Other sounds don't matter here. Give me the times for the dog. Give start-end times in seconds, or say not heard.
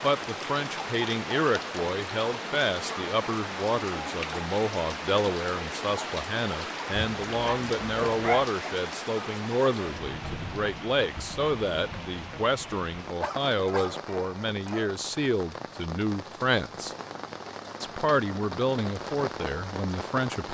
7.0-8.5, 13.2-15.0.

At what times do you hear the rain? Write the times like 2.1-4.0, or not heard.
0.0-20.4.